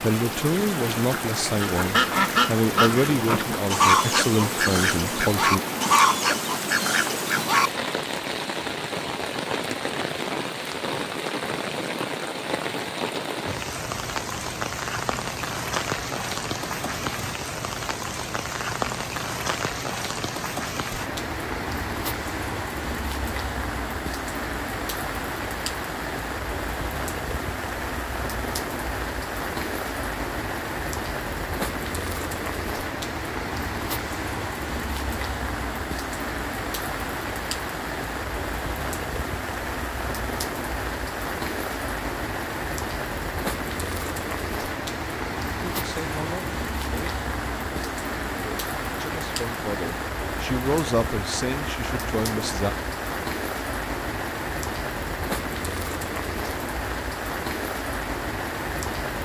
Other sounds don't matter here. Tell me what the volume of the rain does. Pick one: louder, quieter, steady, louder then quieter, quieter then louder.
steady.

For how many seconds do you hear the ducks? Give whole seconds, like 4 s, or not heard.
6 s.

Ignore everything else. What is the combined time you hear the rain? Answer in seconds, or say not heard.
59 s.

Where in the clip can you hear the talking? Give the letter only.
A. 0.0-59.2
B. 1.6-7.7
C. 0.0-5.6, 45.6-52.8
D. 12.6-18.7
C.